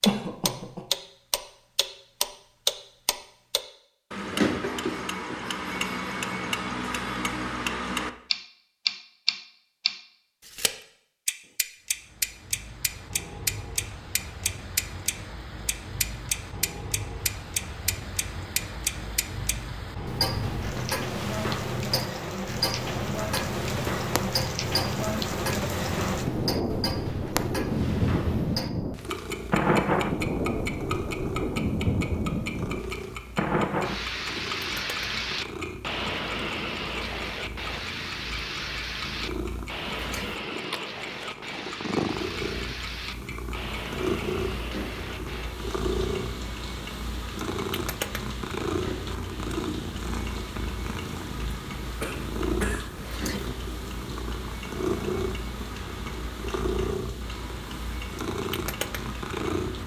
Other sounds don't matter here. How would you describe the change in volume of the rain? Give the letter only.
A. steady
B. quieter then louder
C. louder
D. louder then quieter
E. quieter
D.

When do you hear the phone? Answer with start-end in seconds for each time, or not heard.
not heard.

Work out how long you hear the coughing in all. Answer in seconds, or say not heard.
2 s.